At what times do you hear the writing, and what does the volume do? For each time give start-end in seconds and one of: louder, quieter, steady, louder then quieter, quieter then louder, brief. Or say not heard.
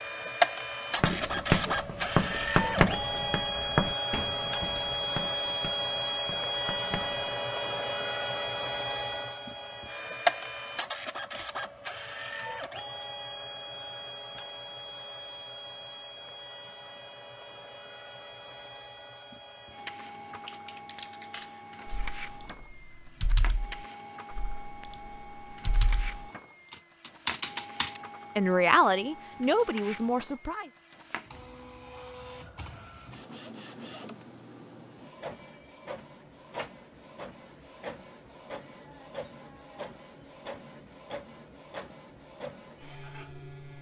1.0-7.2 quieter.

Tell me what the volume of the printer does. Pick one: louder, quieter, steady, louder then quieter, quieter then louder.
quieter.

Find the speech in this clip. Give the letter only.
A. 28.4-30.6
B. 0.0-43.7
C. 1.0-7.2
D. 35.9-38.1
A.